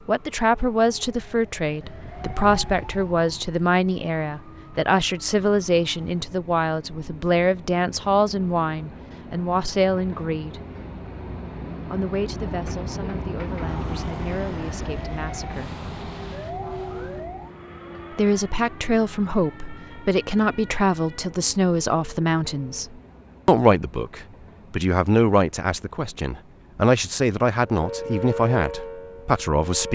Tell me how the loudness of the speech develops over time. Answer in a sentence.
The loudness of the speech goes down, then up.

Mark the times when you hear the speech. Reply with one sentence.
The speech can be heard from 0.1 to 10.6 s, from 11.8 to 15.8 s and from 18.1 to 29.9 s.